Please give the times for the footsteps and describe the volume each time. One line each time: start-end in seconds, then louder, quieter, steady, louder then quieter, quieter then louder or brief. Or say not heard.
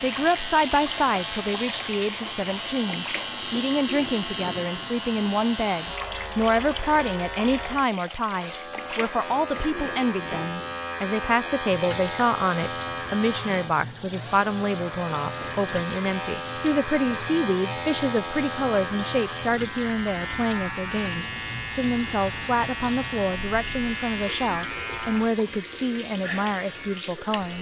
not heard.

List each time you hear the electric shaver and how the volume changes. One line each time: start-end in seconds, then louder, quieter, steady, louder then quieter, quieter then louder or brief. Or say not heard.
0.0-27.5 steady.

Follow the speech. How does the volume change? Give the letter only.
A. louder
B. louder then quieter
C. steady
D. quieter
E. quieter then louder
C.